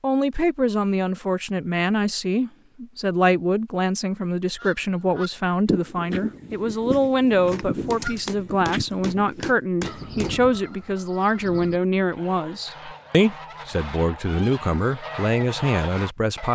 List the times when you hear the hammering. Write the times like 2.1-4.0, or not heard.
7.5-10.3.